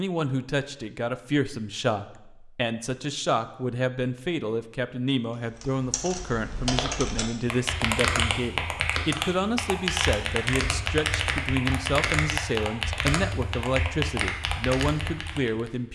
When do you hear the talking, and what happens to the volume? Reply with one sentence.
You can hear the talking from 0.0 to 15.9 s, at a steady volume.